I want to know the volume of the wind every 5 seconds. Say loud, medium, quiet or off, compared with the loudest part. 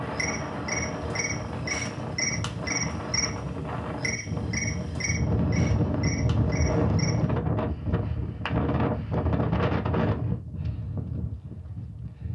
medium, loud, medium.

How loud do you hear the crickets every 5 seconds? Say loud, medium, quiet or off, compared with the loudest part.
loud, medium, off.